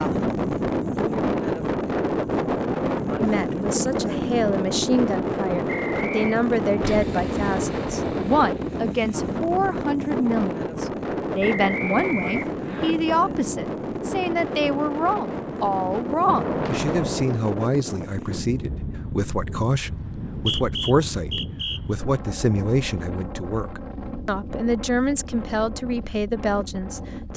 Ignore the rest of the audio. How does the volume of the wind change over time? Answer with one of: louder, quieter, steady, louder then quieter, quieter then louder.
quieter.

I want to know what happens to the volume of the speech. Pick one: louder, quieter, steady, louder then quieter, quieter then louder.
steady.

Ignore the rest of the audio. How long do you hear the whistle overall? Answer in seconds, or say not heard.
4 s.